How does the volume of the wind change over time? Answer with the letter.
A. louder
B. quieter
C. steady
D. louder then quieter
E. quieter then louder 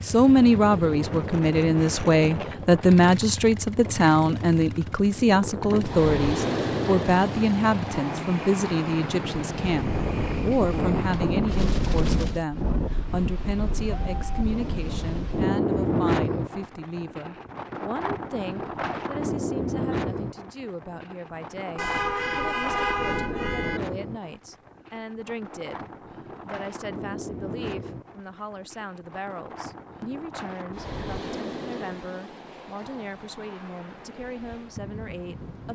B.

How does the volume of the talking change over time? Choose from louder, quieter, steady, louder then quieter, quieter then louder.
quieter.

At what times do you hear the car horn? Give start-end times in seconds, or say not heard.
21.8-23.8.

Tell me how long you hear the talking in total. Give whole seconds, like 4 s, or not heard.
36 s.